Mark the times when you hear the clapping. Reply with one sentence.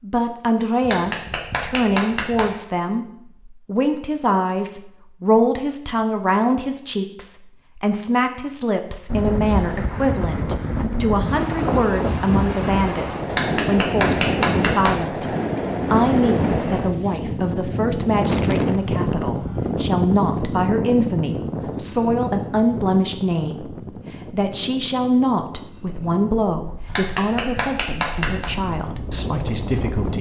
The clapping can be heard from 0.8 to 2.5 s, from 13.2 to 15.0 s and from 26.9 to 28.5 s.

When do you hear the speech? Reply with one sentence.
The speech can be heard from 0.0 to 15.2 s and from 15.9 to 30.1 s.